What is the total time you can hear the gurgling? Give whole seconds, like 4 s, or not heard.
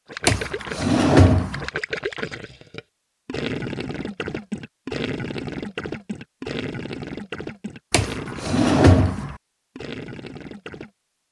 11 s.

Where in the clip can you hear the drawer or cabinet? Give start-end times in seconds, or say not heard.
0.2-1.7, 7.9-9.3.